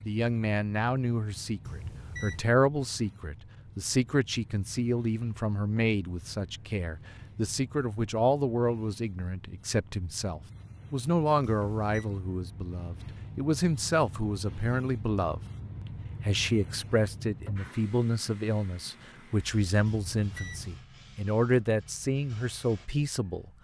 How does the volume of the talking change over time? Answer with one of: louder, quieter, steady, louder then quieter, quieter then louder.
steady.